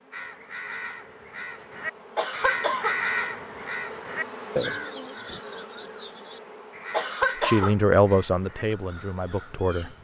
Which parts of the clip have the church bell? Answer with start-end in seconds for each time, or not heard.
not heard.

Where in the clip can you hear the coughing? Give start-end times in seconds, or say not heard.
2.1-3.0, 6.9-7.8.